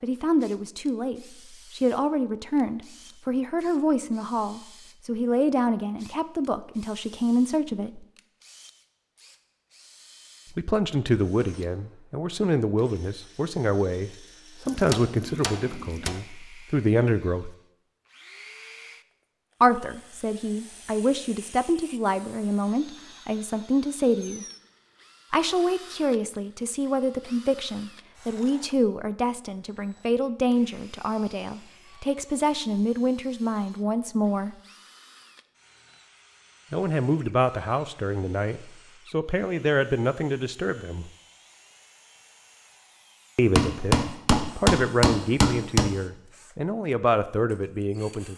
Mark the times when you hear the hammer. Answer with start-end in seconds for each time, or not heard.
14.7-16.1, 43.5-45.9.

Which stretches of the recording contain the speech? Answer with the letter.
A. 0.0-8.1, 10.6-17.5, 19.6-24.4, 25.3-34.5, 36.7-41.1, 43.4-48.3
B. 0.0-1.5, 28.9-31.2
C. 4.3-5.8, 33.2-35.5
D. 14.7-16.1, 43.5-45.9
A.